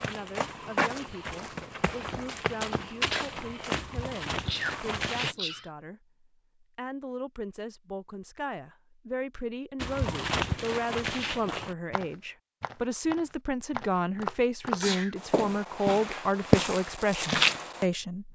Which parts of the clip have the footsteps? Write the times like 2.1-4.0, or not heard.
0.0-5.3, 9.8-17.9.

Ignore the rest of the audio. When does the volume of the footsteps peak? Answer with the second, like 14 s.
17 s.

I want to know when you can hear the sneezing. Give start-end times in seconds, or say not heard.
4.5-5.7, 14.7-15.2.